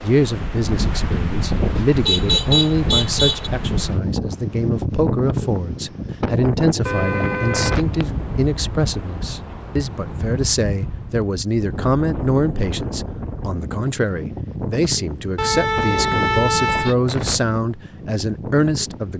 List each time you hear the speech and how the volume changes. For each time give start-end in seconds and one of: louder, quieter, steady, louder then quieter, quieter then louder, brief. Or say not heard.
0.0-19.1 steady.